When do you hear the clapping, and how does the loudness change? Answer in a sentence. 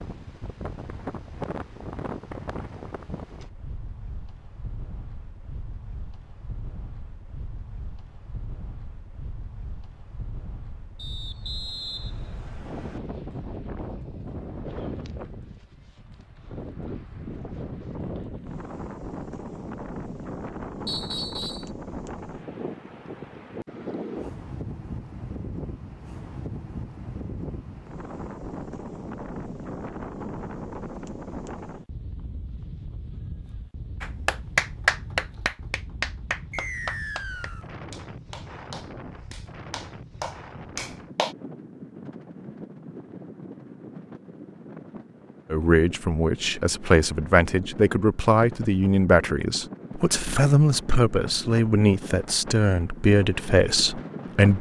The clapping can be heard from 34.0 to 41.4 s, getting quieter then louder.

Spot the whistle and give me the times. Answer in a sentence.
The whistle can be heard from 10.9 to 13.0 s, from 20.9 to 21.7 s and from 36.5 to 37.6 s.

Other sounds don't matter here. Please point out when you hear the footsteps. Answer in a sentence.
The footsteps can't be heard in this clip.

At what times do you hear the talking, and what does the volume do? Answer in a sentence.
You can hear the talking from 45.5 to 54.5 s, at a steady volume.